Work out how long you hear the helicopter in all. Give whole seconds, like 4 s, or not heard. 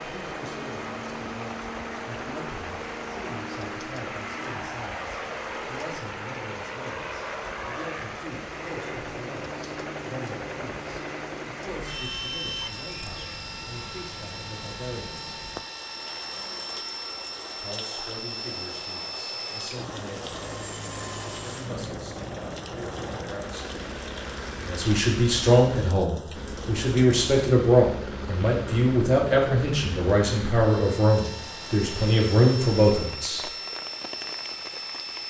35 s.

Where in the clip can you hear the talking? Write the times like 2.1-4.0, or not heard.
0.0-15.2, 17.6-20.5, 21.2-23.9, 24.6-33.5.